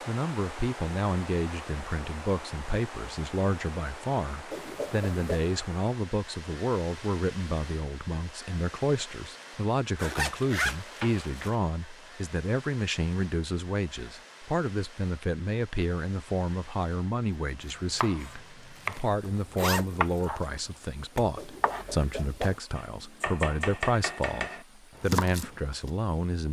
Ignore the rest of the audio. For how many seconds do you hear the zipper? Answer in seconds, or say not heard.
3 s.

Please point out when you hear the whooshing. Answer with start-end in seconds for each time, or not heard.
4.5-5.5, 21.4-22.6.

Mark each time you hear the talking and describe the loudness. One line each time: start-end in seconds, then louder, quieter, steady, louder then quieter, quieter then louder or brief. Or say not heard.
0.1-26.4 steady.